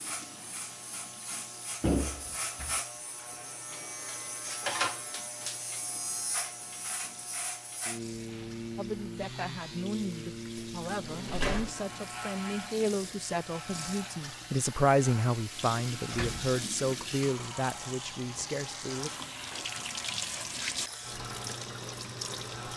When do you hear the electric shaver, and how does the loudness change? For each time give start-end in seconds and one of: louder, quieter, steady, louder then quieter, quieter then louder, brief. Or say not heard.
0.0-22.7 quieter.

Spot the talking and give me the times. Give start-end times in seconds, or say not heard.
8.8-19.1.